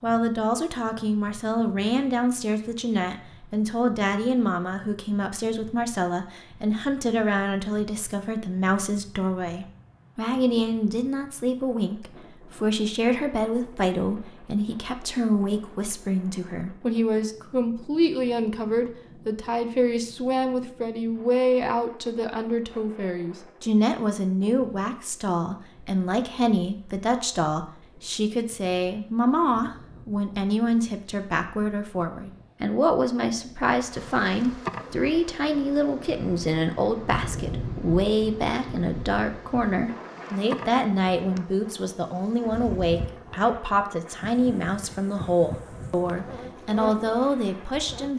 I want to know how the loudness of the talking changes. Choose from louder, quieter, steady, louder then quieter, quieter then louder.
steady.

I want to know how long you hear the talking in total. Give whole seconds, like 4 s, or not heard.
48 s.